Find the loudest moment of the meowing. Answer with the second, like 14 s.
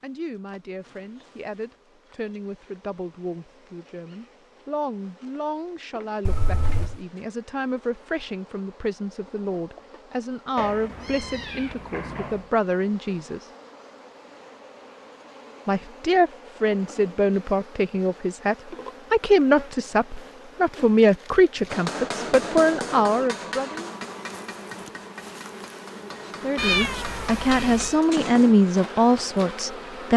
27 s.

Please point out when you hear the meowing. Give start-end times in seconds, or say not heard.
6.2-7.0, 10.6-12.5, 26.6-27.9.